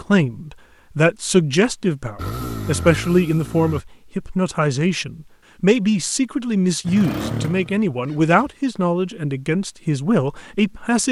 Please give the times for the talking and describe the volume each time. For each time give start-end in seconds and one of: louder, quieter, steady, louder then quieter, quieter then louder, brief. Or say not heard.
0.0-11.0 steady.